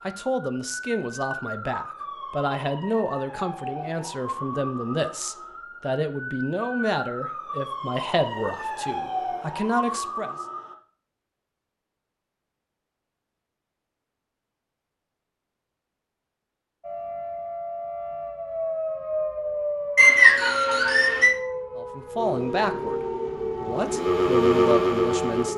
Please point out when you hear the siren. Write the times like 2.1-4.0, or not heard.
0.0-10.8, 16.8-25.5.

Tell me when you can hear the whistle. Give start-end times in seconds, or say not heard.
19.9-21.4.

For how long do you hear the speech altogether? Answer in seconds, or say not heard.
14 s.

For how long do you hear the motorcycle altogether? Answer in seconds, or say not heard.
3 s.